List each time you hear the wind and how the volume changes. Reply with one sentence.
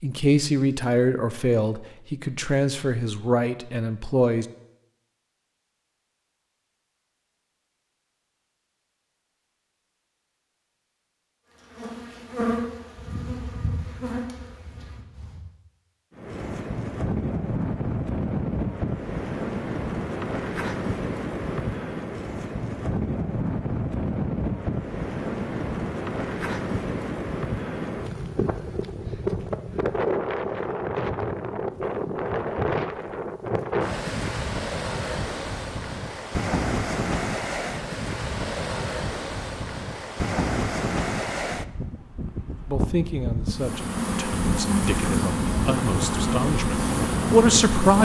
You can hear the wind from 16.1 to 47.9 s, at a steady volume.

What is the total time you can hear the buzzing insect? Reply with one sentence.
The buzzing insect can be heard for 8 seconds in total.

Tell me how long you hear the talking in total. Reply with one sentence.
The talking can be heard for 10 seconds in total.